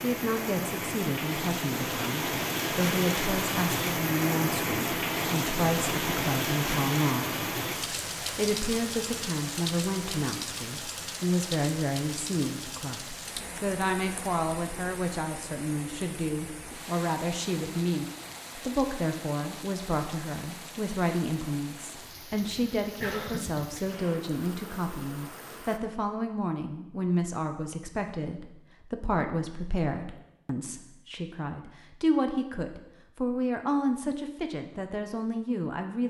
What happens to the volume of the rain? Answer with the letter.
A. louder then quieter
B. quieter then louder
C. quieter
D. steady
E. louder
C.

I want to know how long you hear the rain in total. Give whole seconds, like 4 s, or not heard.
26 s.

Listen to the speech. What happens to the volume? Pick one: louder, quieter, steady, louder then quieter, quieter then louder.
steady.